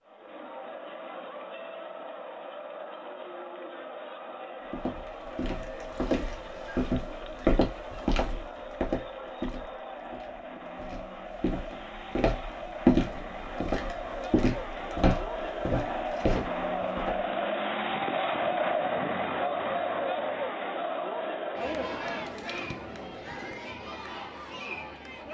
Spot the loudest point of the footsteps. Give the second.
13 s.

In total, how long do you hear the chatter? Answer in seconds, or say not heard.
25 s.